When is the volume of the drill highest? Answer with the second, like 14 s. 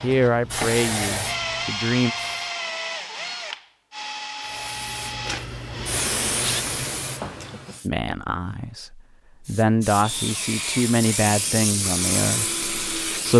2 s.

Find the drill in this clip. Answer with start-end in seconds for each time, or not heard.
0.0-6.7, 10.0-13.3.